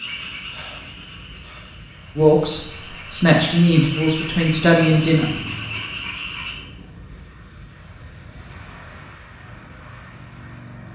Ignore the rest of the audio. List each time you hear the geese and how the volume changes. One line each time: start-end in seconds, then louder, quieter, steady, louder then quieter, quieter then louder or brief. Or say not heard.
not heard.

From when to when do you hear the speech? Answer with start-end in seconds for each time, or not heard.
2.1-5.4.